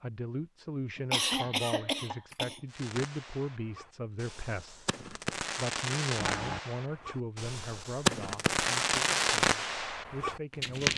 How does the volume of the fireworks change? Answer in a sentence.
The volume of the fireworks goes up.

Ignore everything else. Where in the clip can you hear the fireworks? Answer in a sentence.
The fireworks can be heard from 2.7 to 10.9 s.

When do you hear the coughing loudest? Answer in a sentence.
The volume of the coughing peaks at 1 second.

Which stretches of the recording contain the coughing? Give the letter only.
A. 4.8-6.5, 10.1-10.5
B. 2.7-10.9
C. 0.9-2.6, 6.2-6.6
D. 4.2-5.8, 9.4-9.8
C.